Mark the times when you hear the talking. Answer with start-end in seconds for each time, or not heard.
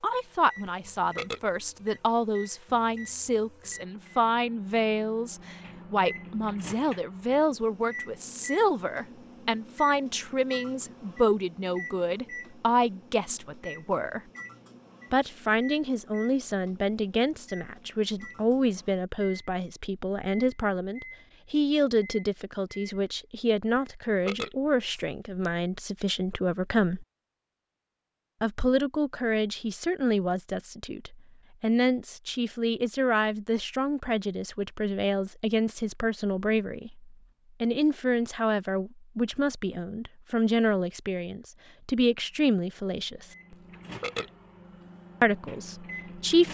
0.0-14.2, 15.1-27.1, 28.4-43.2, 45.2-46.4.